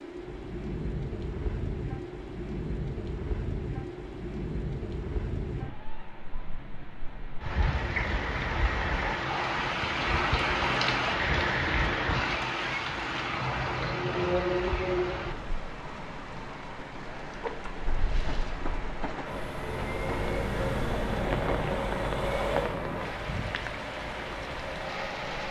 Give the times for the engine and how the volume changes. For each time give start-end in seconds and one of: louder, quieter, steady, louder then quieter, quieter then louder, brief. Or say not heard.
19.2-25.4 quieter.